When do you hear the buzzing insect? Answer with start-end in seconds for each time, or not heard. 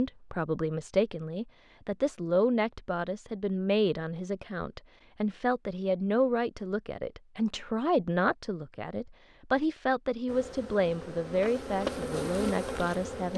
10.2-13.3.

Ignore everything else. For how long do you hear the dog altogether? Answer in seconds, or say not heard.
not heard.